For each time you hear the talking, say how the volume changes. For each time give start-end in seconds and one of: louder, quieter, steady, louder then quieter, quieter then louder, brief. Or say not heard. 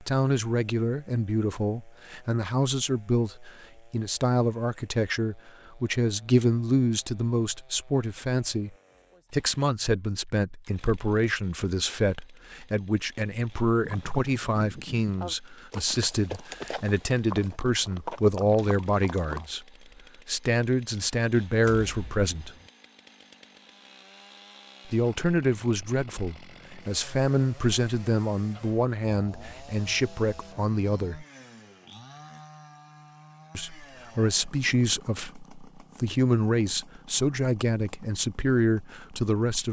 0.0-19.6 steady
20.2-22.5 brief
24.9-31.2 steady
33.5-39.6 quieter then louder.